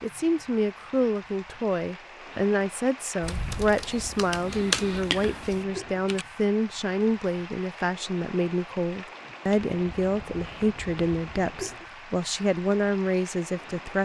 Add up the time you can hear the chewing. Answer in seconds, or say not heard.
not heard.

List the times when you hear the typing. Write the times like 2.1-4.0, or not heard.
3.2-6.2.